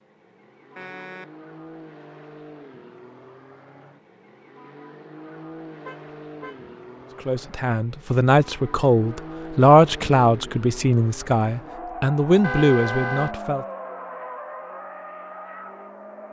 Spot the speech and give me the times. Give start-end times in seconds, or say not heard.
7.2-13.7.